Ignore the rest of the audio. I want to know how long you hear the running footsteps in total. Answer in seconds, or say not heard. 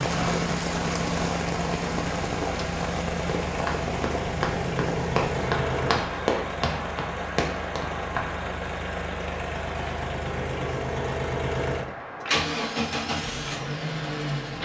5 s.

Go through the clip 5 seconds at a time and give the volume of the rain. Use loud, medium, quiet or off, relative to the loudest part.
loud, medium, medium.